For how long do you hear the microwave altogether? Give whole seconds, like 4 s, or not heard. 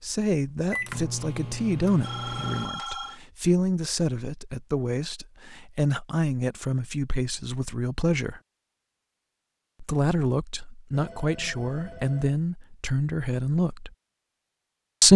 3 s.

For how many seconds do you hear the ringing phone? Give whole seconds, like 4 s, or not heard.
3 s.